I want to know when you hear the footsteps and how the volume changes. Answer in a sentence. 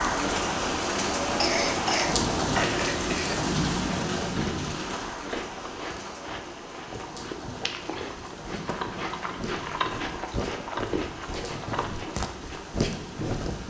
You can hear the footsteps from 6.0 to 13.6 s, getting louder.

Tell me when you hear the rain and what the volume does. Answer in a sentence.
You can hear the rain from 0.0 to 13.6 s, getting quieter.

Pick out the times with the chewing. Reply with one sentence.
The chewing can be heard from 4.2 to 12.7 s.